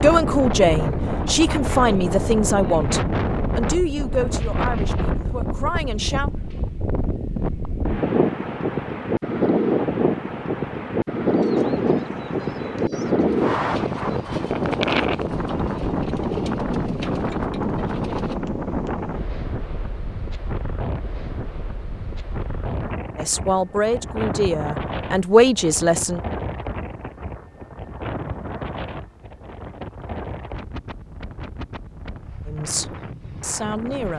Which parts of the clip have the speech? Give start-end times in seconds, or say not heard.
0.0-6.3, 23.1-26.2, 32.5-34.1.